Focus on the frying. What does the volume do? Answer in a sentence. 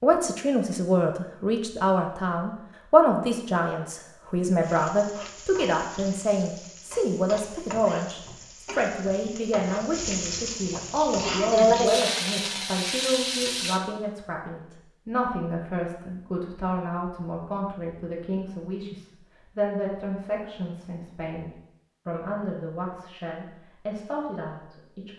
The loudness of the frying goes up.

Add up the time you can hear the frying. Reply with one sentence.
You can hear the frying for 9 seconds altogether.